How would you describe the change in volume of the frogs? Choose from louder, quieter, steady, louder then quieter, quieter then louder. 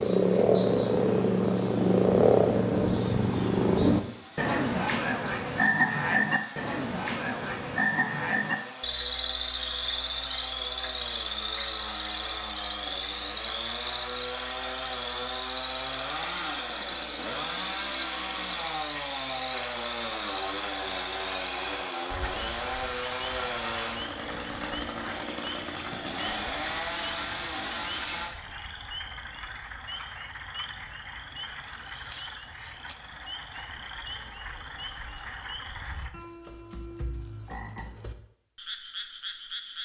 quieter.